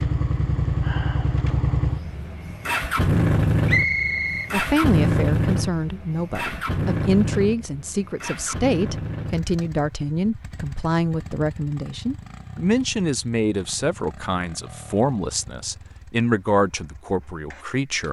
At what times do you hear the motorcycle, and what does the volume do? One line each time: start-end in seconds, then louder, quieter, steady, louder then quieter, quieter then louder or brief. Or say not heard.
0.0-18.0 quieter.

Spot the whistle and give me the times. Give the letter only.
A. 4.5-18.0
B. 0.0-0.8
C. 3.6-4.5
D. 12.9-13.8
C.